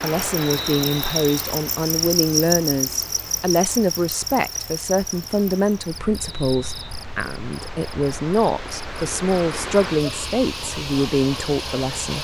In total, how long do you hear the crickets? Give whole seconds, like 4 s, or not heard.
12 s.